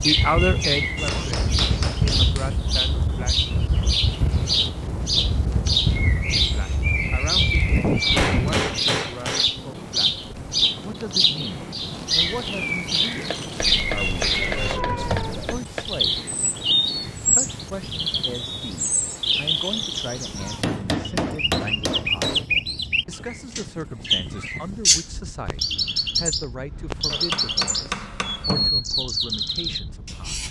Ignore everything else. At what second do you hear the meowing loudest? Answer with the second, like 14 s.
15 s.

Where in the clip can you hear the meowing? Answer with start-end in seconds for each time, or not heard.
13.7-15.6.